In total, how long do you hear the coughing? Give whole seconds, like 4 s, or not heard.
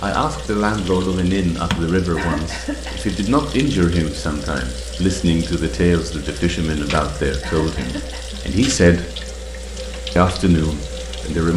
2 s.